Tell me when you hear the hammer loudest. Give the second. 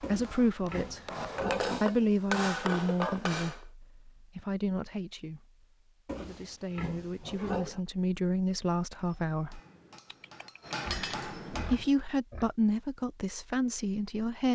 2 s.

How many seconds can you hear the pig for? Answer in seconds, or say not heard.
6 s.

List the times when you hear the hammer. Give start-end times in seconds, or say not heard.
0.1-3.6, 9.0-12.0.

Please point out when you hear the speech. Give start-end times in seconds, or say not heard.
0.0-1.0, 1.8-9.6, 10.9-14.5.